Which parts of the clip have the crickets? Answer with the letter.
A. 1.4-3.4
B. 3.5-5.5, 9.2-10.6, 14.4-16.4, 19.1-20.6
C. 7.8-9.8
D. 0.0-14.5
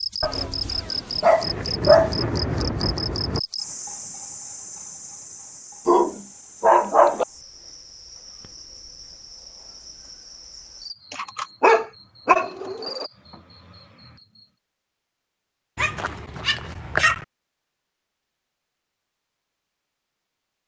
D.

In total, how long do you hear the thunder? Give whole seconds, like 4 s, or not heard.
2 s.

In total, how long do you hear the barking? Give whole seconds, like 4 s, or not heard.
7 s.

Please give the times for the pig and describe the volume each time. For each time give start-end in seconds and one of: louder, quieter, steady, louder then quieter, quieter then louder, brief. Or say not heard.
not heard.